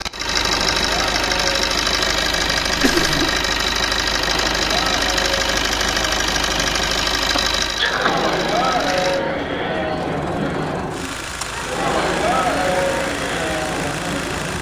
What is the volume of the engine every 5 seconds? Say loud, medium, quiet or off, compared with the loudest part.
loud, loud, medium.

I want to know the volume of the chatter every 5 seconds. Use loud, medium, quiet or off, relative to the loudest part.
medium, loud, loud.